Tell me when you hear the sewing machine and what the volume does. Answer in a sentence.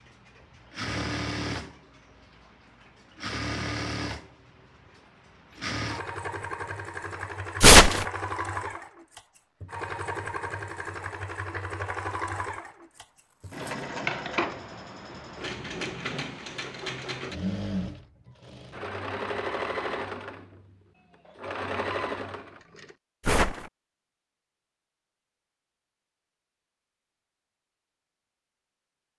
You can hear the sewing machine from 0.0 to 22.9 s, at a steady volume.